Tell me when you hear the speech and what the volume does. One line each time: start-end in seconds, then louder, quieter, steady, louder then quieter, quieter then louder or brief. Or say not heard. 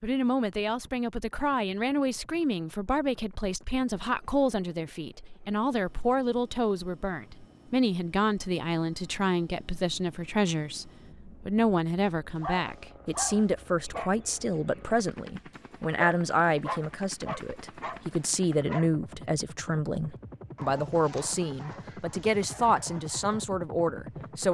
0.0-24.4 steady.